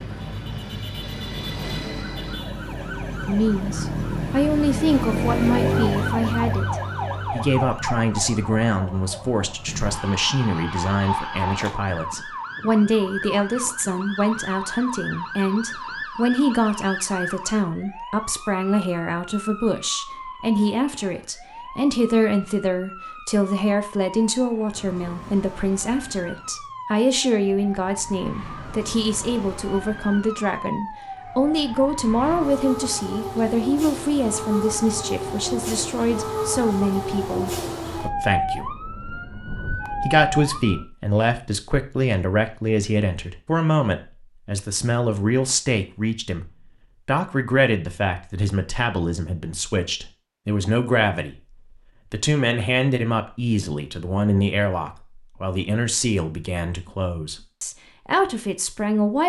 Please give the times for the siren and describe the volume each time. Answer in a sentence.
You can hear the siren from 0.0 to 40.9 s, getting quieter then louder.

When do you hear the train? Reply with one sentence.
The train can be heard from 0.0 to 2.4 s.